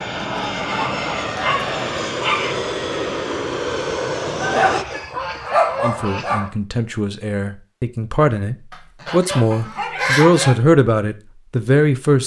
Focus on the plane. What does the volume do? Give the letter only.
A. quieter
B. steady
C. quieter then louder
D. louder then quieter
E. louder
B.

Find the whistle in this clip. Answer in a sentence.
You can't hear the whistle here.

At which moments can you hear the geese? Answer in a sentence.
You can hear the geese from 0.1 to 2.1 s, from 4.4 to 6.5 s and from 8.7 to 10.6 s.